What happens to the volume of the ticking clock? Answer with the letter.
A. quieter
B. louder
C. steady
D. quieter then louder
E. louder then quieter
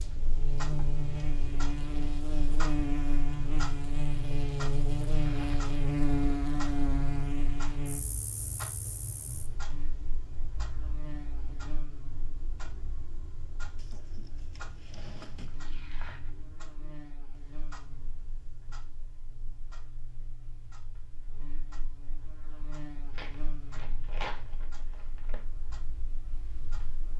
A.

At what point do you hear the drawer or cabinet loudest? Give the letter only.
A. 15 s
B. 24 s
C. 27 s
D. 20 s
A.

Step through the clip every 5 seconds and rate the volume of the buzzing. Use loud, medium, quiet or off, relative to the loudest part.
loud, loud, quiet, quiet, quiet, quiet.